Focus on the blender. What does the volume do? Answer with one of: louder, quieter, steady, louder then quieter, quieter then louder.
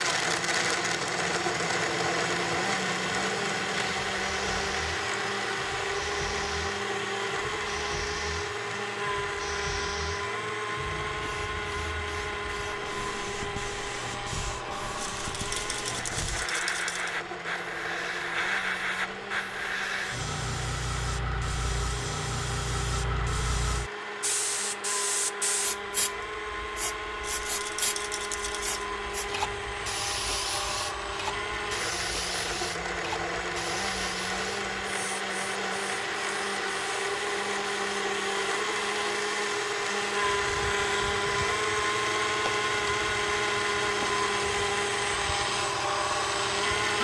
quieter then louder.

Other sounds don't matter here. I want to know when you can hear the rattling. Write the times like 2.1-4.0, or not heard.
14.9-17.1, 27.2-28.9.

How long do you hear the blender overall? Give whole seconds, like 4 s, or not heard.
47 s.